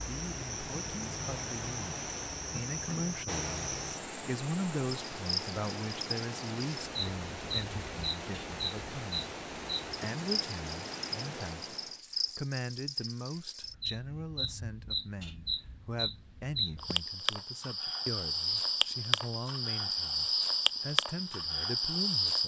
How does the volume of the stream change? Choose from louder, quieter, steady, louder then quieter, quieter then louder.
steady.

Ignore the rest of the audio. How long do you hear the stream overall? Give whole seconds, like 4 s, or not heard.
12 s.